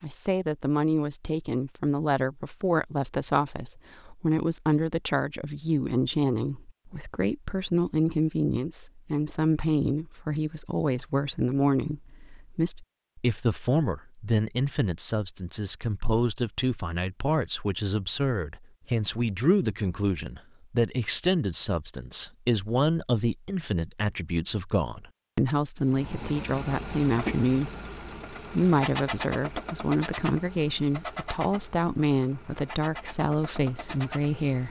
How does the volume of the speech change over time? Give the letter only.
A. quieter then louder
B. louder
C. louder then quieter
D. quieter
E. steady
E.